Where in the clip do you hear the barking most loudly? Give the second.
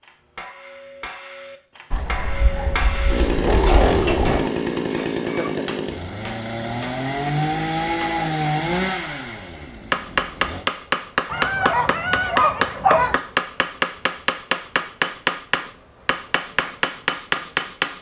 13 s.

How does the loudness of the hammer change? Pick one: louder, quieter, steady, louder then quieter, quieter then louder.
louder.